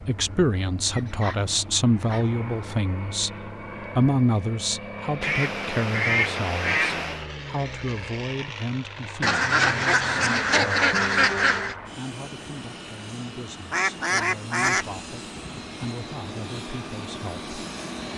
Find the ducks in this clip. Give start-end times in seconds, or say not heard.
0.8-2.4, 5.2-7.2, 9.2-11.8, 13.7-14.8.